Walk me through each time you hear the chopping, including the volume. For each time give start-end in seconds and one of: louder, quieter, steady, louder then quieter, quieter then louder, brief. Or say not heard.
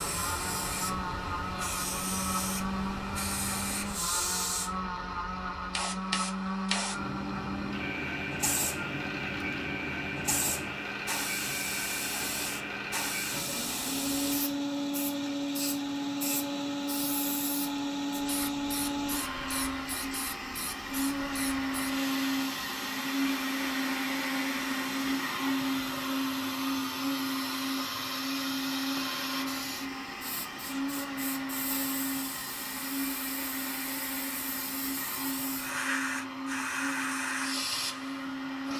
not heard.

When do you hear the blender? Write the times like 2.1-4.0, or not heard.
0.0-38.7.